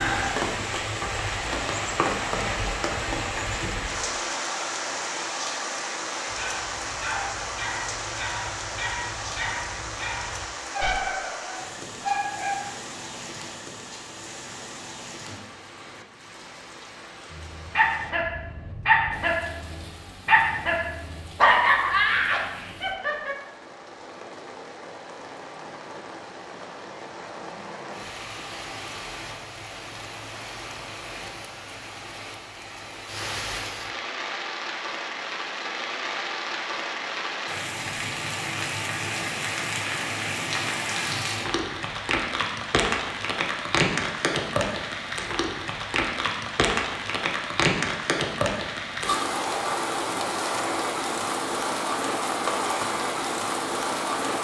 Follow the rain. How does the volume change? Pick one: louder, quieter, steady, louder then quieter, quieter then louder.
quieter then louder.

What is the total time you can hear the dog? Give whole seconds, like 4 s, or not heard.
12 s.